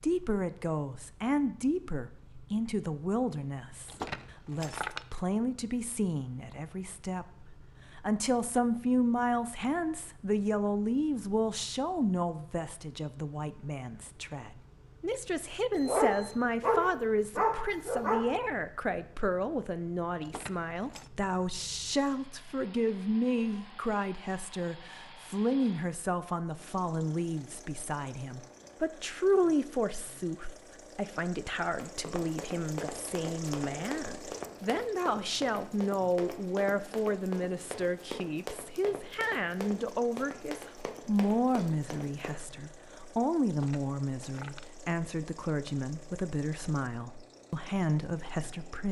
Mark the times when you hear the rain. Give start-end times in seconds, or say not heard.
not heard.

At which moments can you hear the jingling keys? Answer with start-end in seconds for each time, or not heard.
3.9-5.0, 20.2-21.1, 43.5-44.7.